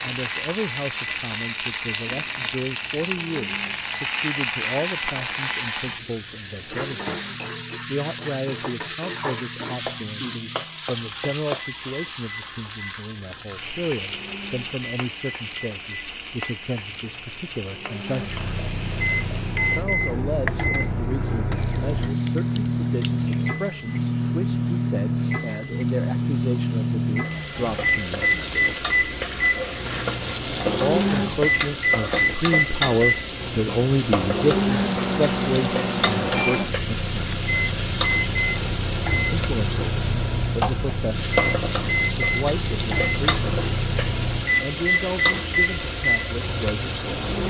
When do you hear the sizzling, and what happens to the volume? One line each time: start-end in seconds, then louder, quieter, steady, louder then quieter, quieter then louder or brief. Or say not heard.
0.0-47.4 quieter then louder.